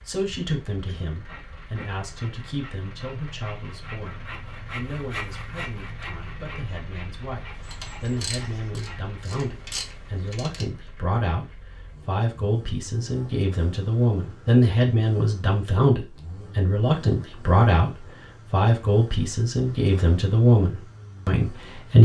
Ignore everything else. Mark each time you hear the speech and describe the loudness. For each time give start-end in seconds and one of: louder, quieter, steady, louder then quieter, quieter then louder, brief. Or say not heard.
0.1-22.0 louder.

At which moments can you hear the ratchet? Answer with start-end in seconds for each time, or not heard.
7.6-10.7.